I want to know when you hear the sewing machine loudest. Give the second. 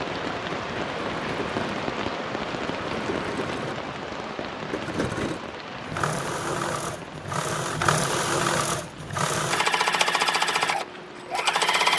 10 s.